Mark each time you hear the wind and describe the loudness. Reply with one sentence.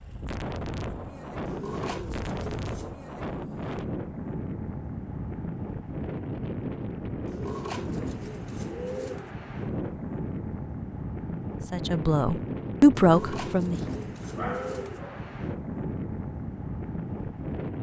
The wind can be heard from 0.0 to 17.7 s, at a steady volume.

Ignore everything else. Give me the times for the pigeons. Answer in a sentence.
The pigeons can be heard from 1.4 to 3.0 s, from 7.2 to 9.3 s and from 12.9 to 15.1 s.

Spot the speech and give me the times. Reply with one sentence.
The speech can be heard from 11.7 to 13.8 s.